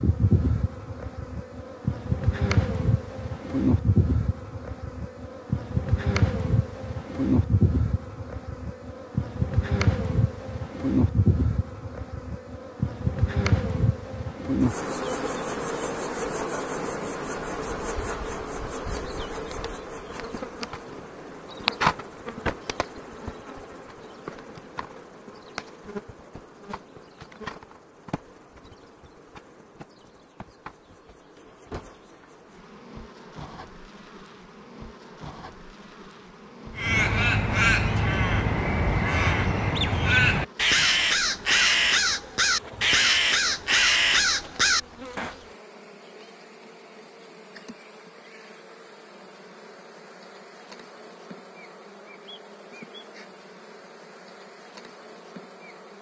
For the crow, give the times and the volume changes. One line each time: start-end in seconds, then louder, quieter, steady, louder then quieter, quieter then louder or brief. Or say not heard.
36.8-45.4 steady.